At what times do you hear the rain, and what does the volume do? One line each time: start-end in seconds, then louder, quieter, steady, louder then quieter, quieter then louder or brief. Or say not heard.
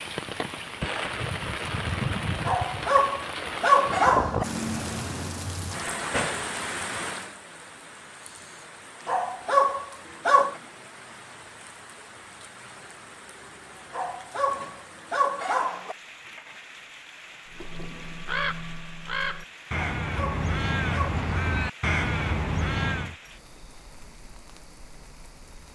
0.0-25.6 quieter.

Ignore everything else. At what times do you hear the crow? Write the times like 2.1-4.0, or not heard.
17.5-23.1.